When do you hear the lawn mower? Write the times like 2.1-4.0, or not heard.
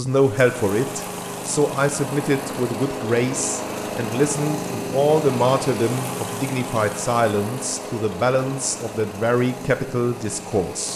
0.0-10.9.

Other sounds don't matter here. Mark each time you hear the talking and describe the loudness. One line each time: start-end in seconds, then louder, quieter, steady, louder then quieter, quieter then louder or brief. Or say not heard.
0.0-10.9 steady.